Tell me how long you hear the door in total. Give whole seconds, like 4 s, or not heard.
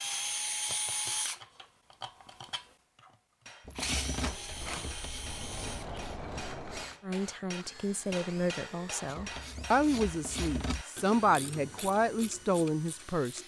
3 s.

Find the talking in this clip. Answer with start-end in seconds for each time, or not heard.
7.0-13.4.